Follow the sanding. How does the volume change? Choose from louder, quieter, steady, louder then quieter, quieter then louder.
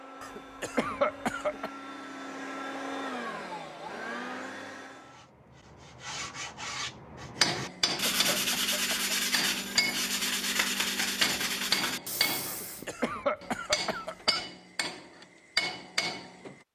louder.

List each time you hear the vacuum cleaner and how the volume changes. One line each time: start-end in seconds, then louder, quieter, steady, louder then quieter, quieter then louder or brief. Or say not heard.
0.0-5.2 louder.